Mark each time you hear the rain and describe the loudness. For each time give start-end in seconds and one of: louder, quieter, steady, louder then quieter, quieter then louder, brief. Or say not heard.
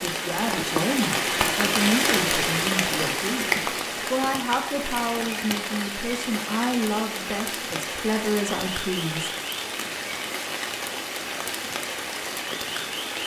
0.0-13.2 quieter.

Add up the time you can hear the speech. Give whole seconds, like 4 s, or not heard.
9 s.